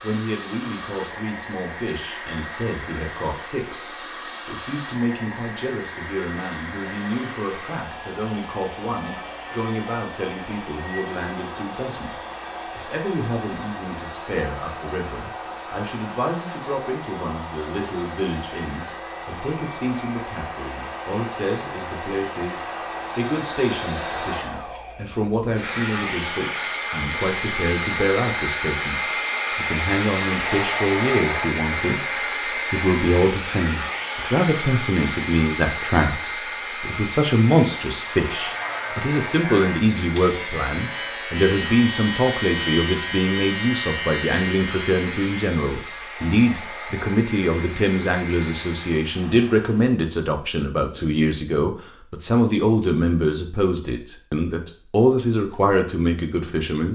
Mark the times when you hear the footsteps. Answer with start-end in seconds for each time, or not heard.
not heard.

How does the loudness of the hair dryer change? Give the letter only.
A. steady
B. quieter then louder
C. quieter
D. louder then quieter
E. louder
D.